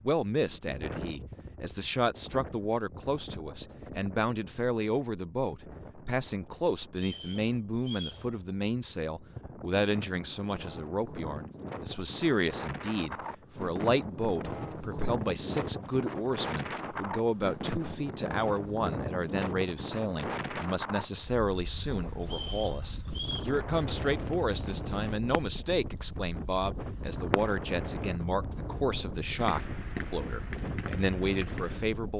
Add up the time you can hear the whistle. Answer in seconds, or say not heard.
3 s.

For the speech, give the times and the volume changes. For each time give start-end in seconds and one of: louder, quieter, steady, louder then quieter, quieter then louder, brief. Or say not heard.
0.0-32.1 steady.